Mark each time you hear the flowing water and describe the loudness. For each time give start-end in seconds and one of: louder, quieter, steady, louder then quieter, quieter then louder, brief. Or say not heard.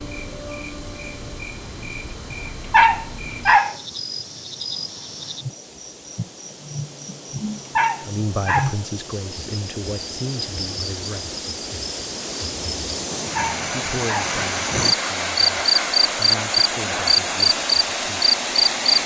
0.0-19.0 louder.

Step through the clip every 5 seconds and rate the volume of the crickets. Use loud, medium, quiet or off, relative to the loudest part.
quiet, quiet, quiet, loud.